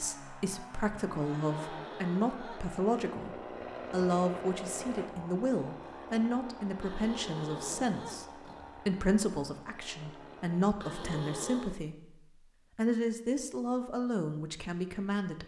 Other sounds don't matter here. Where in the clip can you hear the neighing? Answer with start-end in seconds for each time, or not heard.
1.2-2.8, 6.8-8.7, 10.8-11.8.